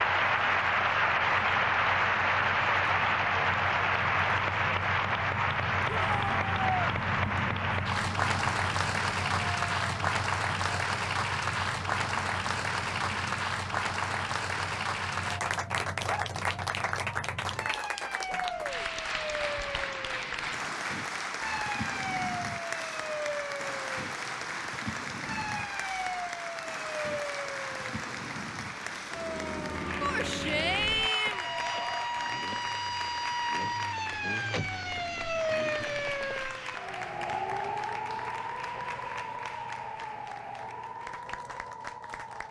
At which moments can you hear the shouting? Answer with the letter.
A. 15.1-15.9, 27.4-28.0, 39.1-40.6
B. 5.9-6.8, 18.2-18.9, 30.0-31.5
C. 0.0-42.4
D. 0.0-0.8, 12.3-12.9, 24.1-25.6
B.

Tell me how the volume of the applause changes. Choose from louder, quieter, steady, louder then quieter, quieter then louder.
quieter.